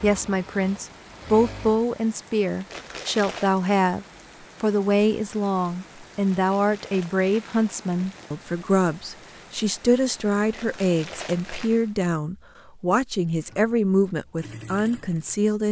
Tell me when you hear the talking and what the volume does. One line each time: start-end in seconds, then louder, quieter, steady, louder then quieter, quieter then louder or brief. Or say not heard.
0.0-15.6 steady.